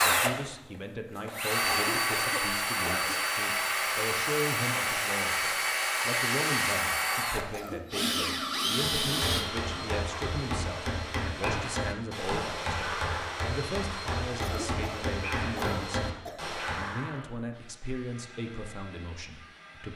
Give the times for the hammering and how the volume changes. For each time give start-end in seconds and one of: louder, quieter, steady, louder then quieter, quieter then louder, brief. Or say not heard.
8.8-17.1 steady.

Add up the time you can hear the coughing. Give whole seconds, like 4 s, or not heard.
4 s.